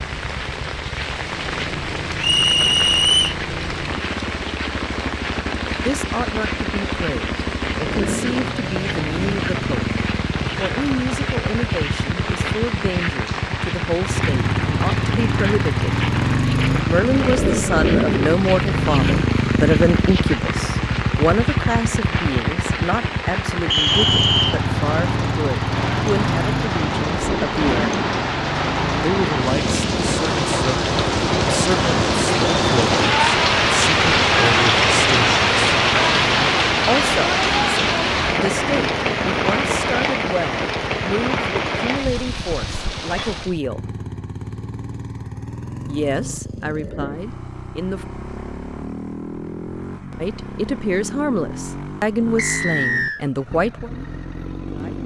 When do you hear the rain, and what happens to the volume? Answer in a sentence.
The rain can be heard from 0.0 to 43.6 s, getting louder.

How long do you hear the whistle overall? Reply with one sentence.
You can hear the whistle for 3 seconds altogether.